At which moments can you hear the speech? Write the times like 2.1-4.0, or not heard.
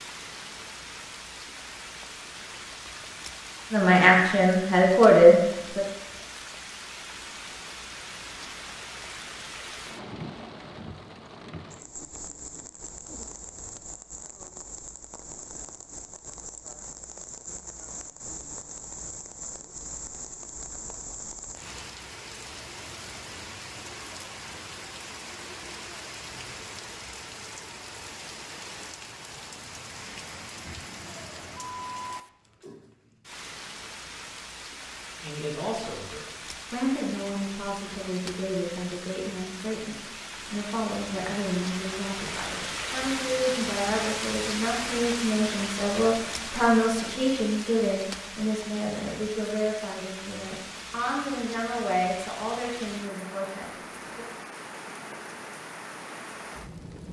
3.7-5.8, 35.2-54.2.